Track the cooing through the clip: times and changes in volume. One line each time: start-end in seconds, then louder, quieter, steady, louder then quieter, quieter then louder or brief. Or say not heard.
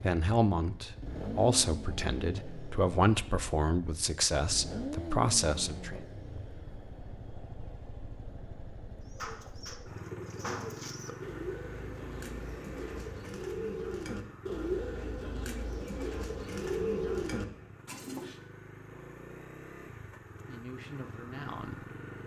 9.1-18.4 louder.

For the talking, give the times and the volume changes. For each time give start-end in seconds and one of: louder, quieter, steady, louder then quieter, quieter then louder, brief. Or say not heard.
0.0-6.0 steady
20.4-21.8 brief.